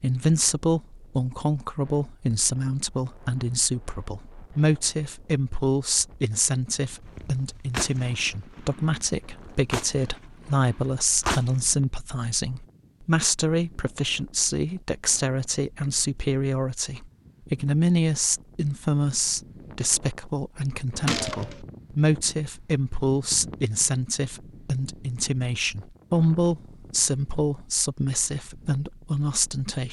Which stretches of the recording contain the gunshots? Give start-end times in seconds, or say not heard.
7.0-11.6, 21.1-21.6.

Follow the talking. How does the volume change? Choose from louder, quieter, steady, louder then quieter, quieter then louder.
steady.